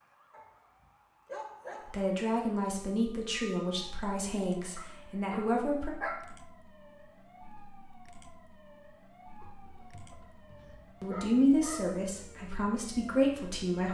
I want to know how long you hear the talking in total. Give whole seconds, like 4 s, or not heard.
7 s.